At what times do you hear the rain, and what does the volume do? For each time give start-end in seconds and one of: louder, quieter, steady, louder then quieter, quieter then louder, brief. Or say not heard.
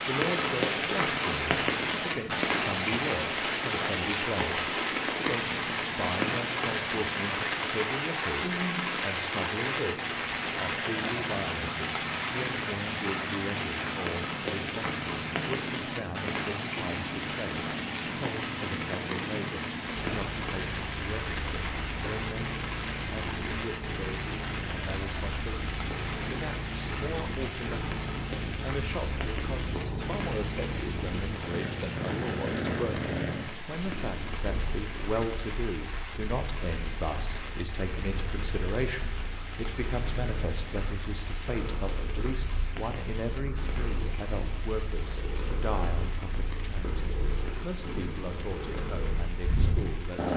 0.0-50.3 quieter.